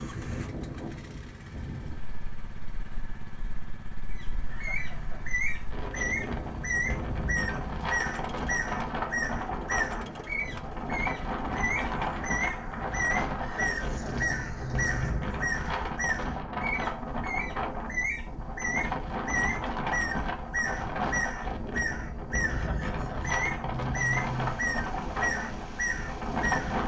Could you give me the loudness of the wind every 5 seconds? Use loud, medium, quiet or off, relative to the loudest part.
medium, loud, loud, loud, loud, loud.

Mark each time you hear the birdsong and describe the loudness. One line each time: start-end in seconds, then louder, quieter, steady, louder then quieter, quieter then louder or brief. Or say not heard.
4.1-26.8 steady.